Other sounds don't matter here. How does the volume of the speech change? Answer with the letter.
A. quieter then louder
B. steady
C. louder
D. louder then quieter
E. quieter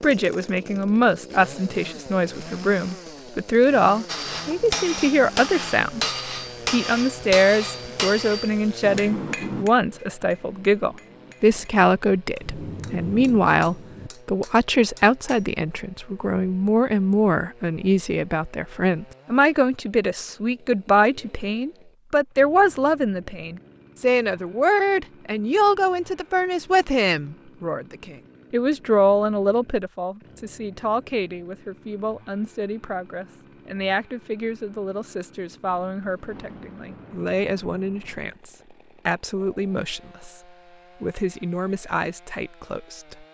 E.